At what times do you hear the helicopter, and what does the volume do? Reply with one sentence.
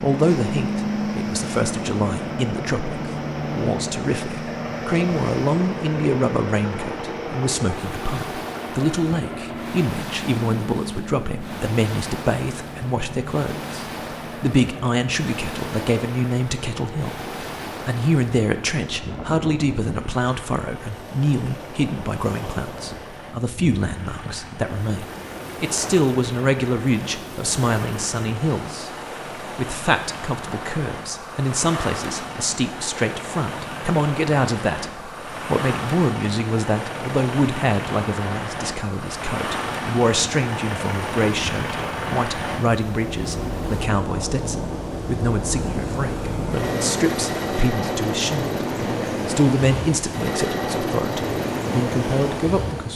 The helicopter can be heard from 0.0 to 52.9 s, getting quieter then louder.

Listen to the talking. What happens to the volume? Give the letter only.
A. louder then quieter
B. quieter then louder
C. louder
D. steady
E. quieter
D.